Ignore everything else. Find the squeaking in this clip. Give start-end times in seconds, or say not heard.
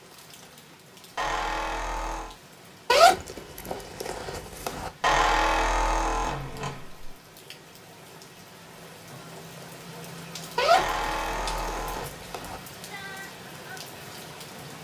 1.1-2.4, 5.0-7.1, 10.7-12.1.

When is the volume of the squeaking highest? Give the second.
5 s.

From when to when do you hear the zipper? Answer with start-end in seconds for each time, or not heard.
2.9-4.9, 10.6-12.6.